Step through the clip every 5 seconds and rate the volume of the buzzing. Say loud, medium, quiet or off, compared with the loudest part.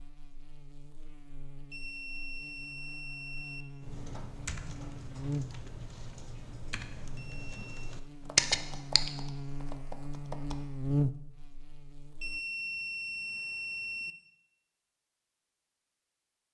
quiet, medium, loud, off.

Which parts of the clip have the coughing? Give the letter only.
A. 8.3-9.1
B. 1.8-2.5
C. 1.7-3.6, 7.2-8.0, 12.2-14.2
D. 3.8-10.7
A.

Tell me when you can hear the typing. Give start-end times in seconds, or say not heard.
3.8-10.7.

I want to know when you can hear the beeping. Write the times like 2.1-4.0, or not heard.
1.7-3.6, 7.2-8.0, 12.2-14.2.